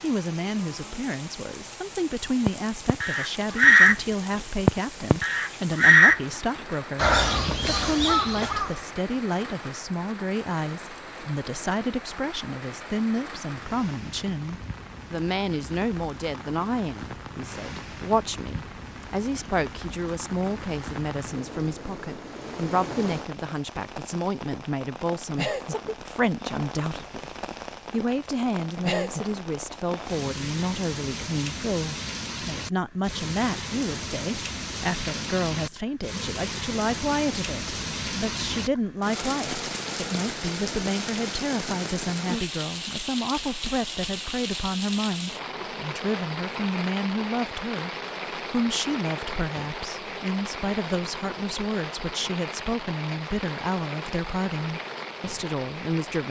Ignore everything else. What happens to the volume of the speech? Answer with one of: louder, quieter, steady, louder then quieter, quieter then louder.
steady.